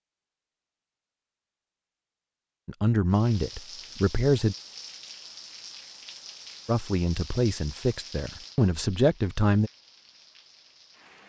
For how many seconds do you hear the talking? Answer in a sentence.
You can hear the talking for 5 seconds altogether.